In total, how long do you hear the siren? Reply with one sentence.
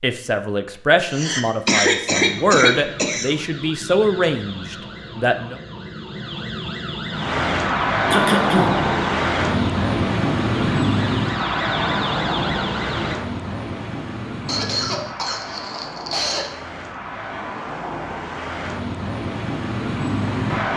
The siren can be heard for 11 seconds in total.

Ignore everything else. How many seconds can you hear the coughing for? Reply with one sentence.
The coughing can be heard for 5 seconds in total.